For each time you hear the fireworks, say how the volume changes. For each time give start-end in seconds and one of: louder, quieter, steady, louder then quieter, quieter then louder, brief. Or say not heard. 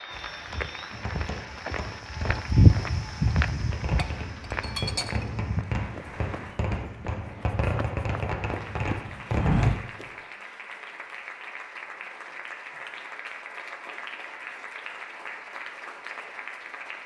0.9-9.7 louder.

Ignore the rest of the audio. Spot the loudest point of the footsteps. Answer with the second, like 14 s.
3 s.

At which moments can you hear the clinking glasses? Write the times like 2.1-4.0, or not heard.
4.0-5.3.